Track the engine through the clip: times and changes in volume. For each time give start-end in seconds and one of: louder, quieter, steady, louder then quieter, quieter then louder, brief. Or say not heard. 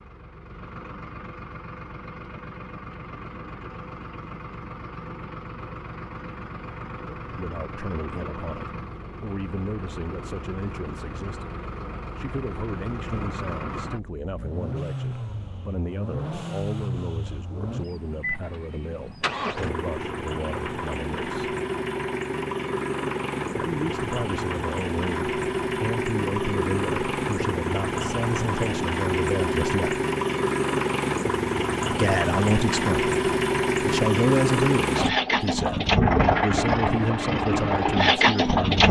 0.0-38.8 louder.